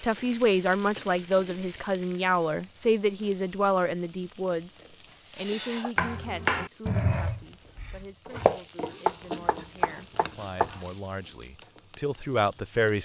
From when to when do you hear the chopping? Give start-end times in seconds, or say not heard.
5.3-10.8.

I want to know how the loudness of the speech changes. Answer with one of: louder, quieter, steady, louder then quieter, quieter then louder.
quieter then louder.